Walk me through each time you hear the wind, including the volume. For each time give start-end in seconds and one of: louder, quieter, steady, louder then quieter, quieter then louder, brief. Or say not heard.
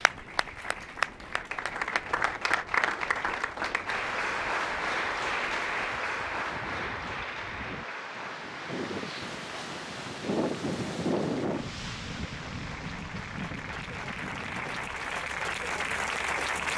0.0-16.7 louder then quieter.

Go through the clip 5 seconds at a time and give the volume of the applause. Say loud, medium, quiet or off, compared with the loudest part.
loud, loud, medium, loud.